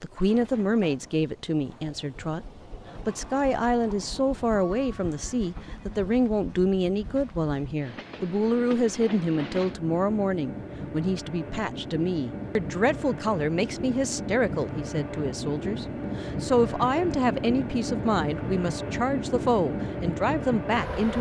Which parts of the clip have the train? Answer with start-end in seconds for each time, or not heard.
0.0-21.1.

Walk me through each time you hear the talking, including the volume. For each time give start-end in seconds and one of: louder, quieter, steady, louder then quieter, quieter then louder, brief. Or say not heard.
0.0-2.5 brief
3.0-21.1 steady.